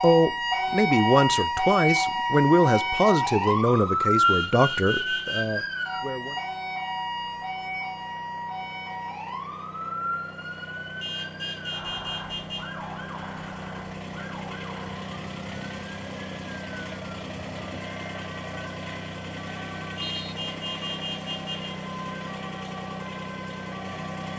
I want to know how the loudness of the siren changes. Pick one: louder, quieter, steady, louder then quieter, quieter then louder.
quieter.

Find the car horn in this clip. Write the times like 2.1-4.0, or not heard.
4.2-5.5, 11.0-12.7, 19.9-21.8.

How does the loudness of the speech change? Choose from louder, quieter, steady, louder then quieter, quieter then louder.
quieter.